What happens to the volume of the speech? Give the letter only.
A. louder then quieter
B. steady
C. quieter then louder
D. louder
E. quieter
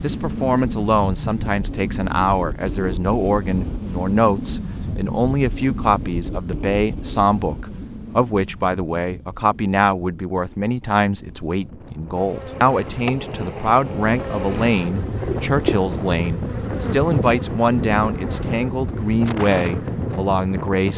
B.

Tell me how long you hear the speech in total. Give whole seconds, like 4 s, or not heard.
21 s.